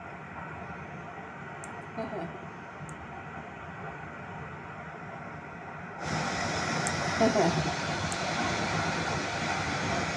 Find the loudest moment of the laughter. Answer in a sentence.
The volume of the laughter peaks at 7 seconds.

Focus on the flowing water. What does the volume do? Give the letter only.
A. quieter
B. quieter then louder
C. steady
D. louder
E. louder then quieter
D.